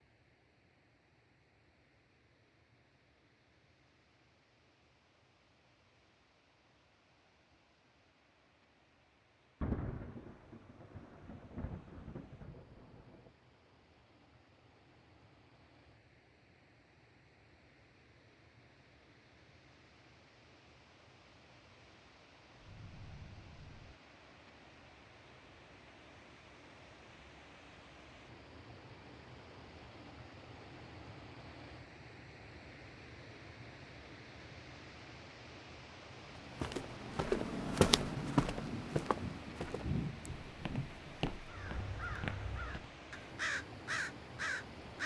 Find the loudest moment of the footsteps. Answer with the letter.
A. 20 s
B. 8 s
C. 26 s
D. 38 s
D.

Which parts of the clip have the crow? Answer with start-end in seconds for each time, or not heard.
41.5-45.0.